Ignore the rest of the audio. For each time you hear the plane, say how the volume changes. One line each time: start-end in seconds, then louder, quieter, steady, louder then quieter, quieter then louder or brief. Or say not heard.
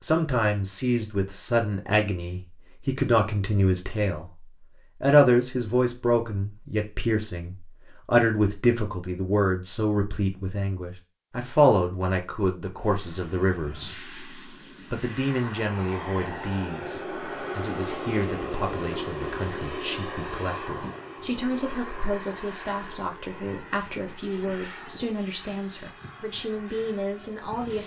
12.8-27.8 louder then quieter.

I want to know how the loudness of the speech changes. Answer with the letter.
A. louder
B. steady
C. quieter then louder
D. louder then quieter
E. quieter
E.